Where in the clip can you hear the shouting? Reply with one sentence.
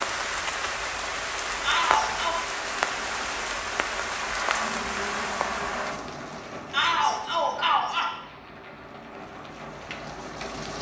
You can hear the shouting from 1.6 to 2.4 s and from 6.7 to 8.1 s.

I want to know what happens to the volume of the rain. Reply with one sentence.
The volume of the rain goes down.